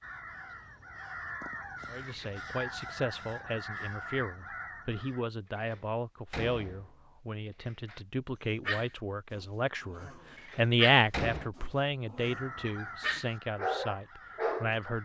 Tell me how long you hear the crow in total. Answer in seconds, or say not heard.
8 s.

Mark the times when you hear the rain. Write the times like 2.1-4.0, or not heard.
not heard.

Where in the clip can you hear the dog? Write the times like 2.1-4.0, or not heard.
8.7-14.8.